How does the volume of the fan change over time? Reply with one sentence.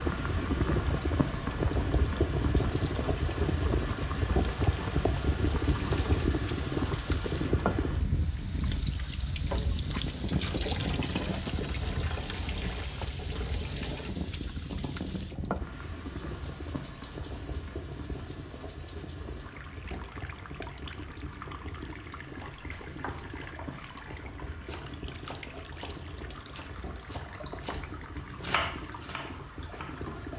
The loudness of the fan goes down.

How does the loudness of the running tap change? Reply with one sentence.
The loudness of the running tap goes up, then down.